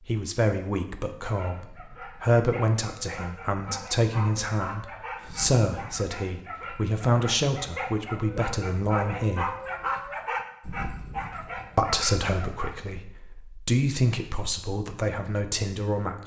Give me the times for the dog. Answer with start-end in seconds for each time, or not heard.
1.1-12.8.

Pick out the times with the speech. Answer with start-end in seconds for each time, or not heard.
0.1-9.5, 11.8-16.2.